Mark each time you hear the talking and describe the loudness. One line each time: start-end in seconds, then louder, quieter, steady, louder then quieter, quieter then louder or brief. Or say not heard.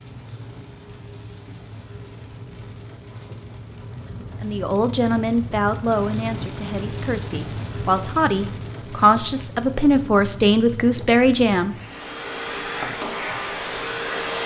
4.4-11.8 quieter then louder.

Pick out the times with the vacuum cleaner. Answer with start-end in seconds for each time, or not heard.
11.8-14.4.